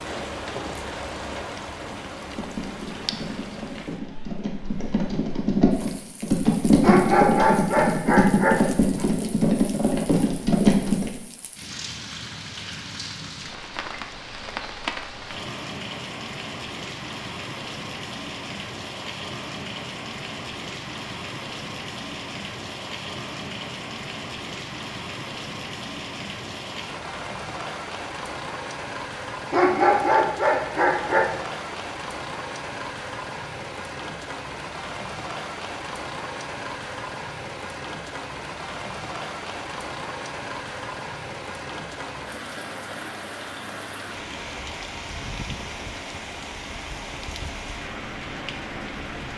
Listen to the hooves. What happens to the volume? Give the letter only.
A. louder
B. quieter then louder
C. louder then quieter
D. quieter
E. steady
A.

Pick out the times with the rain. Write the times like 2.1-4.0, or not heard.
0.0-49.3.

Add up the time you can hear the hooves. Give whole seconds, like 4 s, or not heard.
9 s.